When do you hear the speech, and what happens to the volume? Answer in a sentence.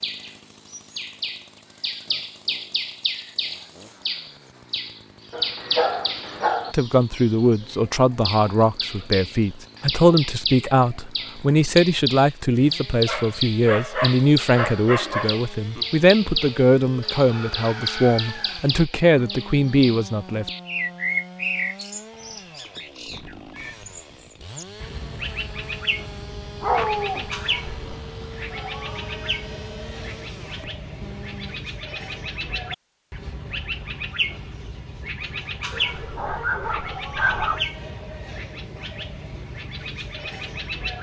The speech can be heard from 6.7 to 20.5 s, at a steady volume.